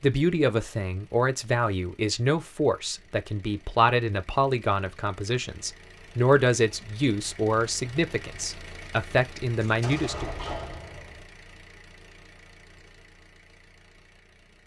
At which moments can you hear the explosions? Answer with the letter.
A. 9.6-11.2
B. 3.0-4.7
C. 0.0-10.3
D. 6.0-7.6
A.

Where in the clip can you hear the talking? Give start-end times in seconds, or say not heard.
0.0-10.3.